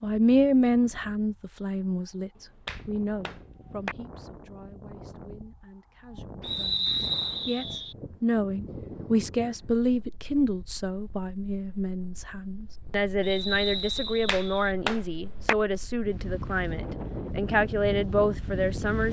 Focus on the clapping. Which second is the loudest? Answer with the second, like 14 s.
15 s.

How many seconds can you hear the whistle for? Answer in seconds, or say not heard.
3 s.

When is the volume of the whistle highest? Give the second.
7 s.